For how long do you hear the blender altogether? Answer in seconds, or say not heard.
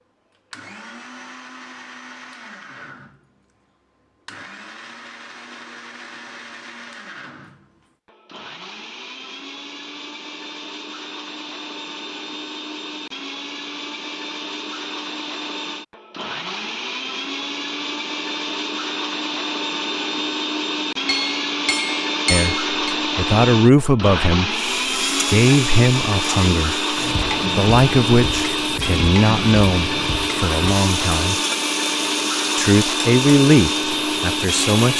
35 s.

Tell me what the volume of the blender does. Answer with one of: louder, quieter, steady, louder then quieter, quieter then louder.
louder.